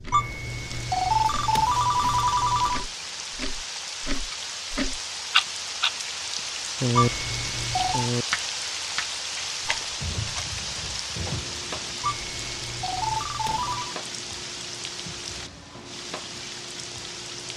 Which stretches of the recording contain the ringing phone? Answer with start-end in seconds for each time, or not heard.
0.1-2.9, 7.0-8.1, 12.0-13.9.